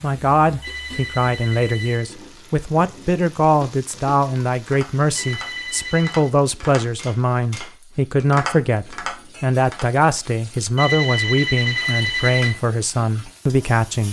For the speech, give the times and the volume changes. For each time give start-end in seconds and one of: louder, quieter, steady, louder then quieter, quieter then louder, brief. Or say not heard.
0.0-14.0 steady.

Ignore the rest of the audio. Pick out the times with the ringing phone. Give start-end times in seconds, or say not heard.
0.6-2.1, 5.2-6.3, 10.8-12.6.